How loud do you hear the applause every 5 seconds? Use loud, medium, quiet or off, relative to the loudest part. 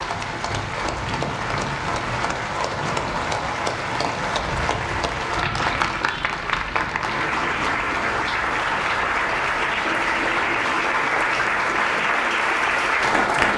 medium, loud, loud.